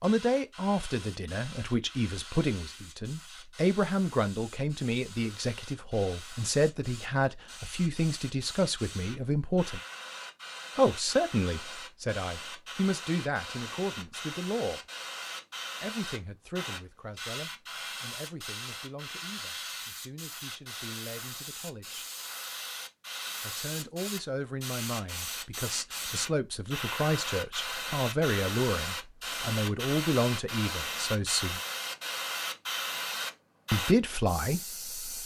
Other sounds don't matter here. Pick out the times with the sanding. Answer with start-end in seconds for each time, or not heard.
not heard.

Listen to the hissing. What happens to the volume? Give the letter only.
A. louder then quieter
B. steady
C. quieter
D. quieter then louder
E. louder
E.